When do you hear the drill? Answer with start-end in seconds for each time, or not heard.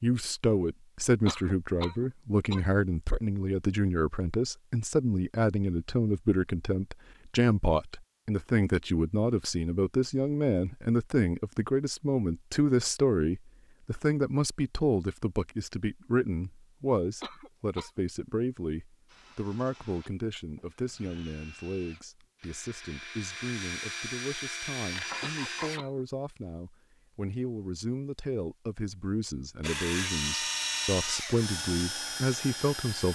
19.1-25.8, 29.6-33.1.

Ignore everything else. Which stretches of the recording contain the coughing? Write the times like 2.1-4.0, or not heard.
1.2-2.6, 17.2-18.1, 25.2-26.1.